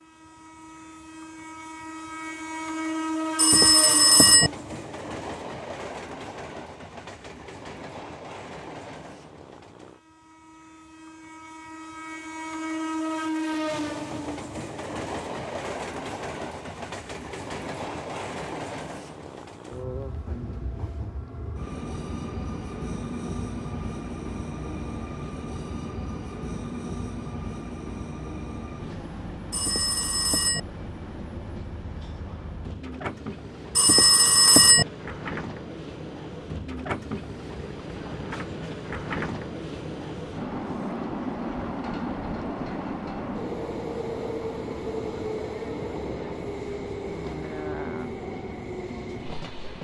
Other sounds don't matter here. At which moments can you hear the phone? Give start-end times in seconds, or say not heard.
3.4-4.5, 29.5-30.6, 33.8-34.9.